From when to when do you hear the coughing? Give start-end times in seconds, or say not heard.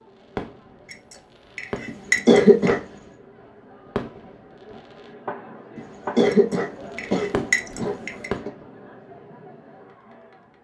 1.9-2.8, 5.8-8.5.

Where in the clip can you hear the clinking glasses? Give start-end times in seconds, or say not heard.
0.8-2.7, 6.2-8.3.